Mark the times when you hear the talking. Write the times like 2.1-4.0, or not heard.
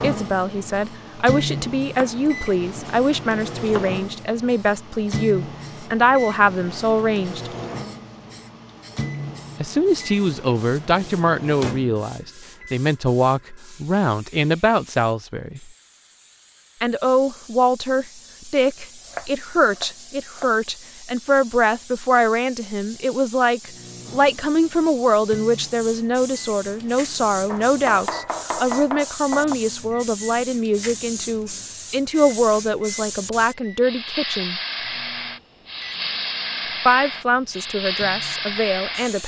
0.0-7.5, 9.6-15.7, 16.8-34.6, 36.9-39.2.